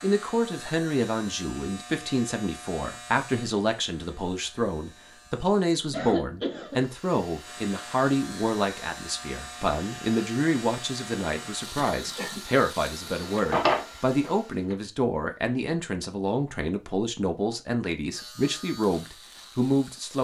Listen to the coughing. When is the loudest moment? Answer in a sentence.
The loudest moment of the coughing is at 6 seconds.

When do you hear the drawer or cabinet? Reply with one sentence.
The drawer or cabinet can be heard from 13.1 to 14.8 s.